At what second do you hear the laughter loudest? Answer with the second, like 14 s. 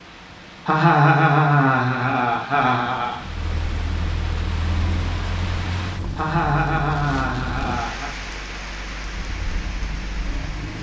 1 s.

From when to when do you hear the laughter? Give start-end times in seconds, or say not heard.
0.7-3.1, 6.2-8.1.